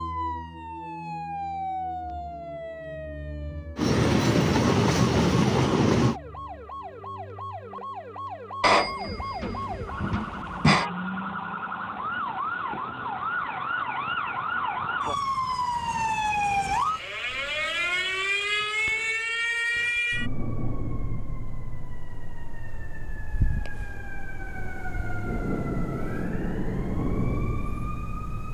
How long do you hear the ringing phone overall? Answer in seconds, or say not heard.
2 s.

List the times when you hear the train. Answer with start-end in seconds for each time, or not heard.
3.8-6.2.